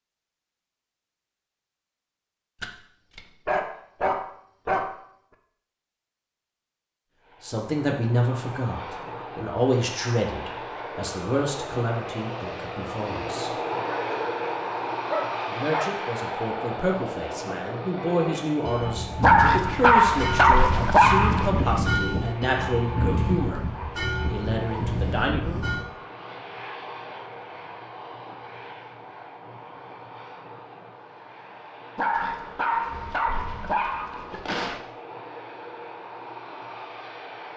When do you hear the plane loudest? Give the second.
14 s.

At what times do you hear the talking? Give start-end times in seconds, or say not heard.
7.4-13.6, 15.4-23.6, 24.3-25.6.